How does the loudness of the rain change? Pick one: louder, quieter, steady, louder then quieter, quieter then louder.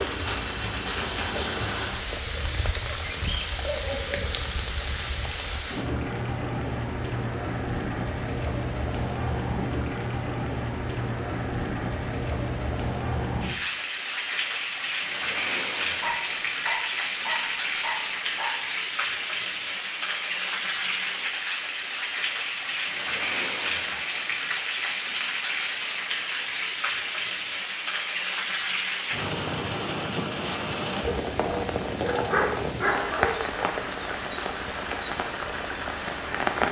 steady.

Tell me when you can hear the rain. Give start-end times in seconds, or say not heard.
0.0-36.6.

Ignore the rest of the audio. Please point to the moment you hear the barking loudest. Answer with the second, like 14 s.
32 s.